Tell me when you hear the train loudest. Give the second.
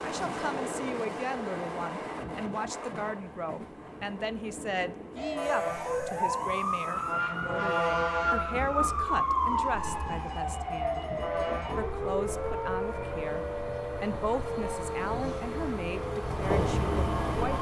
17 s.